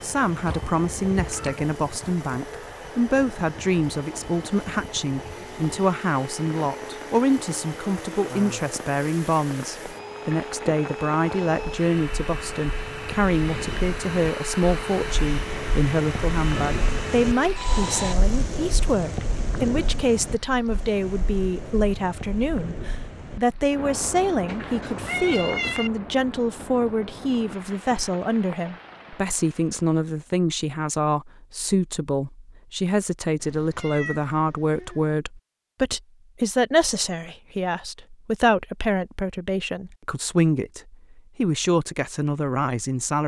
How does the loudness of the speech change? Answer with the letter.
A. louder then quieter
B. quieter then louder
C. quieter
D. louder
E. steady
E.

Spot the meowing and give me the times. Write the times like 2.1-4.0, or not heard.
0.5-1.6, 24.4-25.9, 33.4-35.1.